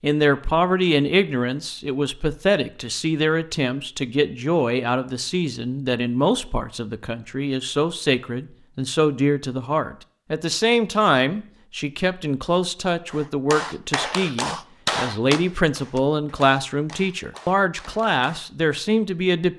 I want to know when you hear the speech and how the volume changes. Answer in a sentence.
The speech can be heard from 0.0 to 19.5 s, at a steady volume.